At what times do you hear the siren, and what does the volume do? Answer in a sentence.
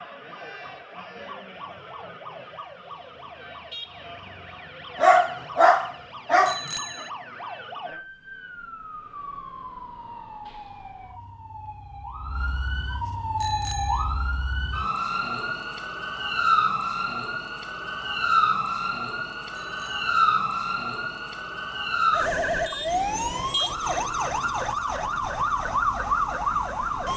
The siren can be heard from 0.0 to 27.1 s, getting louder.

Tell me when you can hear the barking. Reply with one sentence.
You can hear the barking from 5.0 to 6.5 s.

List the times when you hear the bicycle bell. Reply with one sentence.
The bicycle bell can be heard from 6.5 to 7.1 s, from 13.4 to 14.1 s and from 19.6 to 20.1 s.